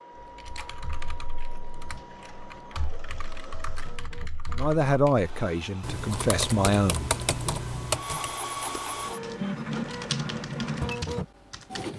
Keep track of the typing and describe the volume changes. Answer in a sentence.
The volume of the typing goes up, then down.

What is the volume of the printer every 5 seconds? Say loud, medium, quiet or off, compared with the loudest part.
quiet, loud, loud.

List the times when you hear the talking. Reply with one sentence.
You can hear the talking from 4.5 to 7.2 s.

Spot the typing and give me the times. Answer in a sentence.
You can hear the typing from 0.1 to 11.9 s.